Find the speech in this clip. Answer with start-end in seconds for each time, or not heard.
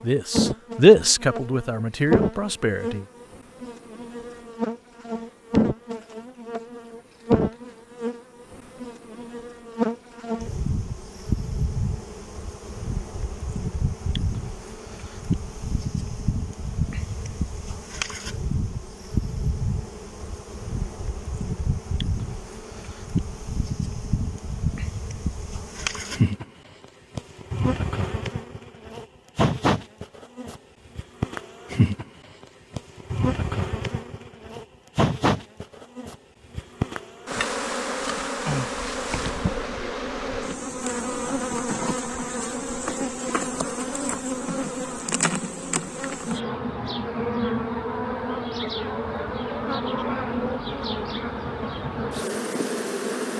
0.0-3.0.